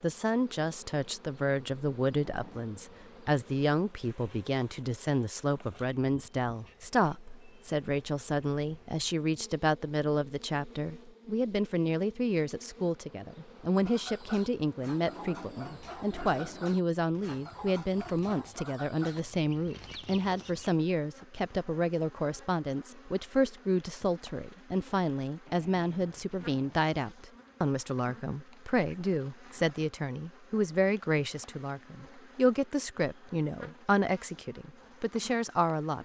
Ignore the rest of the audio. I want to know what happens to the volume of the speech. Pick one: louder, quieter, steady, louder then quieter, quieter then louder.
steady.